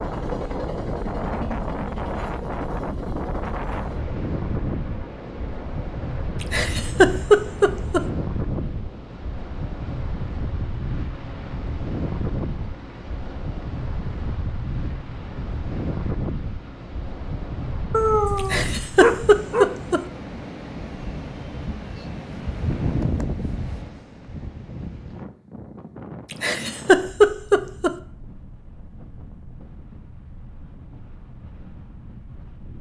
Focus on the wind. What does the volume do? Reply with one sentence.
The loudness of the wind goes down.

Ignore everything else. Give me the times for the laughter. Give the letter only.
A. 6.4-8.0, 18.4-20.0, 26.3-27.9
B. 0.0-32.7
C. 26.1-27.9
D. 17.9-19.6
A.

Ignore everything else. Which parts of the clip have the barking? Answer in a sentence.
You can hear the barking from 17.9 to 19.6 s.